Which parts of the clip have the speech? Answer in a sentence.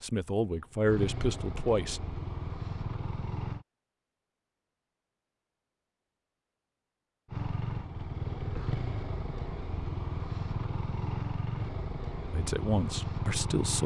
You can hear the speech from 0.0 to 2.0 s and from 12.3 to 13.8 s.